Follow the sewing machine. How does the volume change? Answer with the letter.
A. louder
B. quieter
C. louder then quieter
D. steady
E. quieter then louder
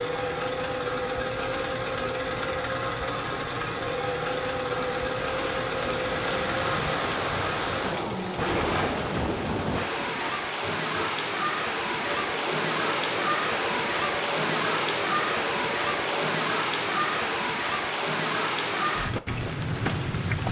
B.